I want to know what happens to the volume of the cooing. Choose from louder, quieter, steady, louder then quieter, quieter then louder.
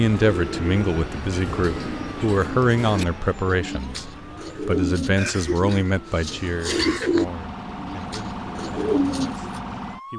louder.